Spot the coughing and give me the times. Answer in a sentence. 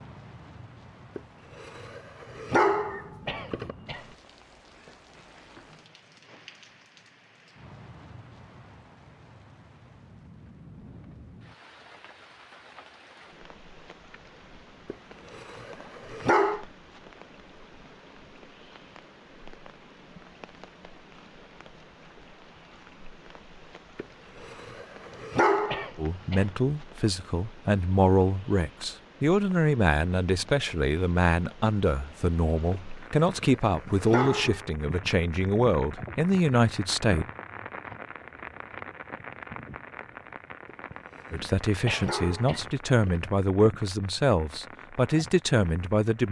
You can hear the coughing from 3.2 to 4.2 s, from 25.6 to 26.6 s and from 41.9 to 42.8 s.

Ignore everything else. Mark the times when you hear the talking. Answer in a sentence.
You can hear the talking from 25.9 to 37.2 s and from 41.3 to 46.2 s.